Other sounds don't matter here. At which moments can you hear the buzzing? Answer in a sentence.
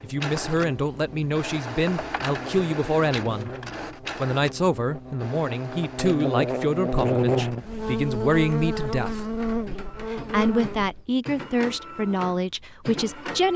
The buzzing can be heard from 0.0 to 11.1 s.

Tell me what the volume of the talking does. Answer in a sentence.
The loudness of the talking stays about the same.